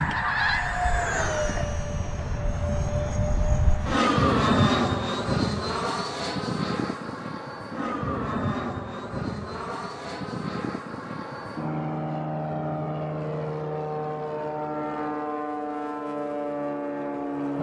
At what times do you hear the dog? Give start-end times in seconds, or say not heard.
not heard.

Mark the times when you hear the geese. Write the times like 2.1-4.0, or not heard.
0.0-1.6.